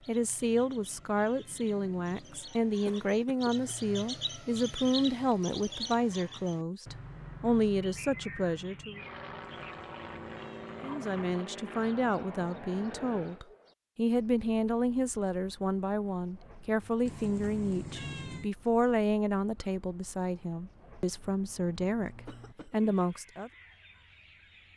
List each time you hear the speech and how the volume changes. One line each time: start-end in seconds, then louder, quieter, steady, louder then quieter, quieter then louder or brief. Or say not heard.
0.1-9.0 steady
10.8-23.5 steady.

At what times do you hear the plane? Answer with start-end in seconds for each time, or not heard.
8.9-13.4.